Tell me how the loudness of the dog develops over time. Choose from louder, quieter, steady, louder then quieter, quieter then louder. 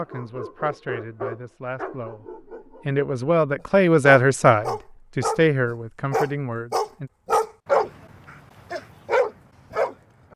louder.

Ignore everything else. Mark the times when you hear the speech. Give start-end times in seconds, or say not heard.
0.0-2.2, 2.9-7.1.